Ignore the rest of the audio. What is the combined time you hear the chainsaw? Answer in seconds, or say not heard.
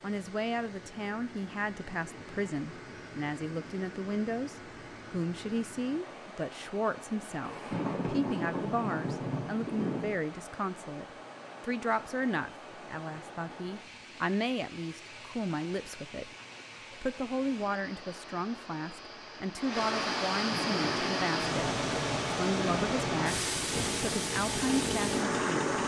2 s.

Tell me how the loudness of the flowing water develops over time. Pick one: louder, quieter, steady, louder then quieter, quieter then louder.
louder.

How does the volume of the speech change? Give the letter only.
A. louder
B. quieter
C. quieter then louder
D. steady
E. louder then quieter
D.